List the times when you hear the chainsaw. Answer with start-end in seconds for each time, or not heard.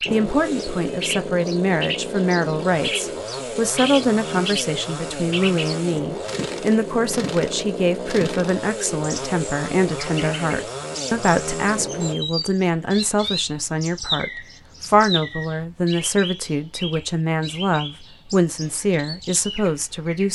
0.0-12.2.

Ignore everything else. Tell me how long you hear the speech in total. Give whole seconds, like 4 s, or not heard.
20 s.